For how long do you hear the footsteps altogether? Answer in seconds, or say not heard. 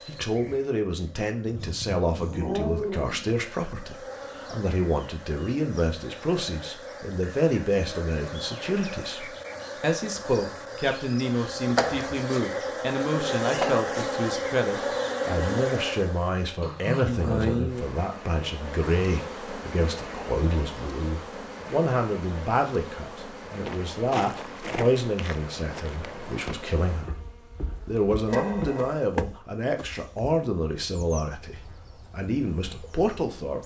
7 s.